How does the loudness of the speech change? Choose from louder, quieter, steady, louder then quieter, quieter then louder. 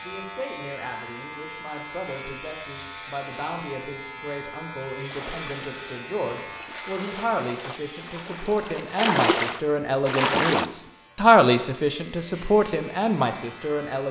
louder.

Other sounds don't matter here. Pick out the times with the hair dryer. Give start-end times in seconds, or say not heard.
not heard.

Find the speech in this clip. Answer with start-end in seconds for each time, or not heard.
0.0-14.0.